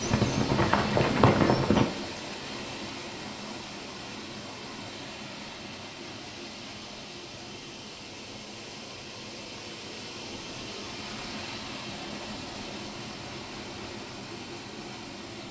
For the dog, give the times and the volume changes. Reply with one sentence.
You can't hear the dog here.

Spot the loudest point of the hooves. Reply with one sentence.
The loudest moment of the hooves is at 1 second.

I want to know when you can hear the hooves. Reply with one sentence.
You can hear the hooves from 0.0 to 1.9 s.